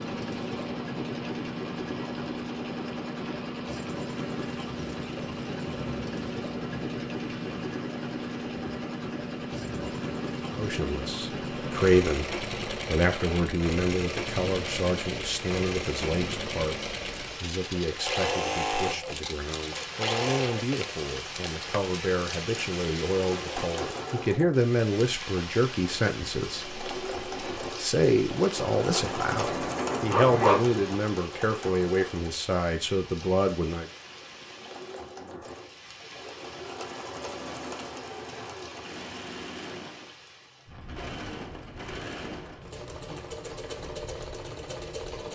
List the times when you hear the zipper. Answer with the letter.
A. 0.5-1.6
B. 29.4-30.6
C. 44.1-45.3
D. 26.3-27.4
B.